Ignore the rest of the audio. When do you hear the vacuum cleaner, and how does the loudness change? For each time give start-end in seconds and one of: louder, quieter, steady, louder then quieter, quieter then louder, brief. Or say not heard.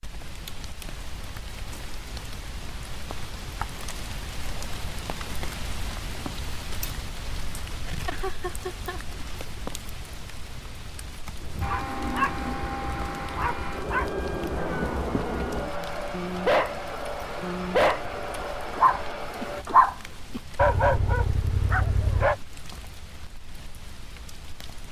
11.6-19.6 steady.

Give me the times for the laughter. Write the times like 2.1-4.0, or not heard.
7.8-9.6.